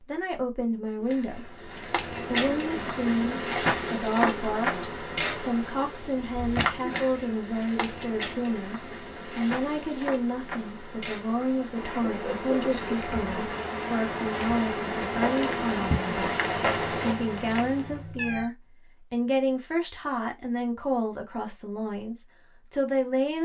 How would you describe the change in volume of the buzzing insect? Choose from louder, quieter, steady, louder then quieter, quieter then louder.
quieter then louder.